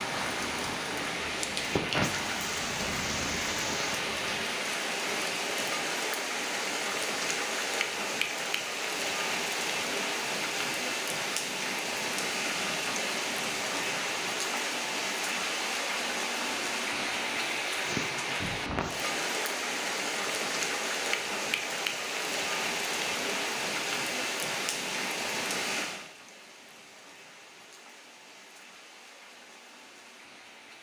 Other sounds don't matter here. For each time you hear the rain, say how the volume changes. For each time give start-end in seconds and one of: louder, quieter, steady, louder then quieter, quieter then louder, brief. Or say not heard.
0.0-30.7 quieter.